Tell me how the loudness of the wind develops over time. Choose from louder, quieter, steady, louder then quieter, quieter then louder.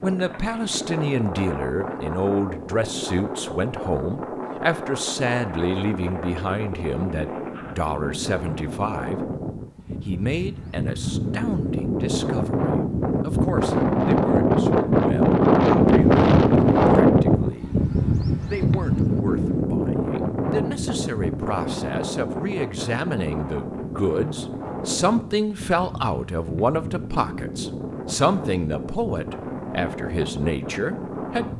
louder then quieter.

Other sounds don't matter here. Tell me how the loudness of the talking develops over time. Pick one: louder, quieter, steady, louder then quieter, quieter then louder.
quieter then louder.